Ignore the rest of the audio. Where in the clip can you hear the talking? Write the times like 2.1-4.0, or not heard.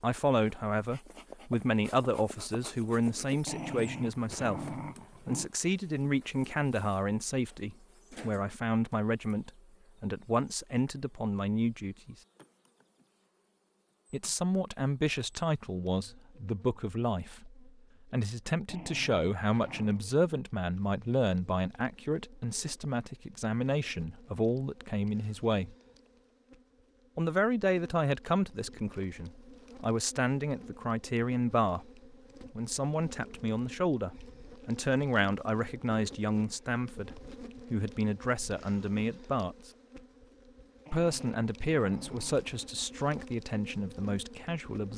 0.0-12.2, 14.1-25.8, 27.1-31.9, 32.5-39.7, 40.9-44.9.